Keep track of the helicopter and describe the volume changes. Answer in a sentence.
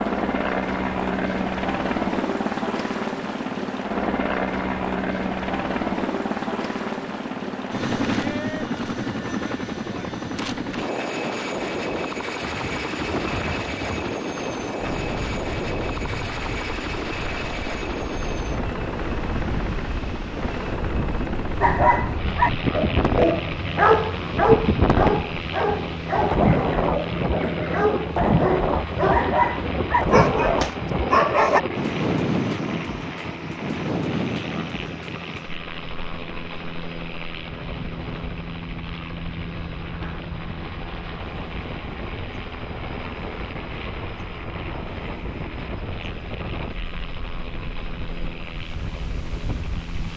The loudness of the helicopter goes down.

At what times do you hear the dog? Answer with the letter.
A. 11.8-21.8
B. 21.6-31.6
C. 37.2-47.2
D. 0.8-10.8
B.